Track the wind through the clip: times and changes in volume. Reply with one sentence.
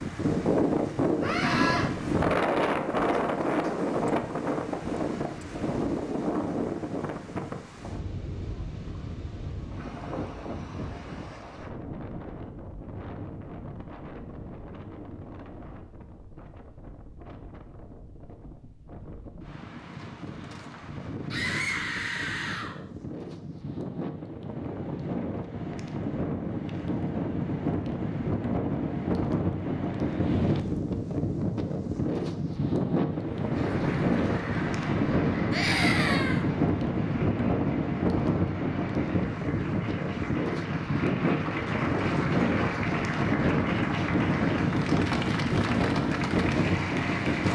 The wind can be heard from 0.0 to 47.5 s, getting quieter then louder.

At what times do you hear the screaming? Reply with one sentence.
The screaming can be heard from 1.2 to 1.9 s, from 21.3 to 22.8 s and from 35.5 to 36.5 s.